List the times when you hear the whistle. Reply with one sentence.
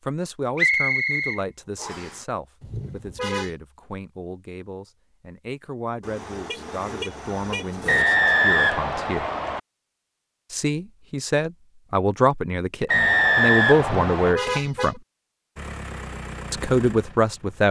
You can hear the whistle from 0.6 to 2.1 s, from 7.8 to 9.6 s and from 12.8 to 14.3 s.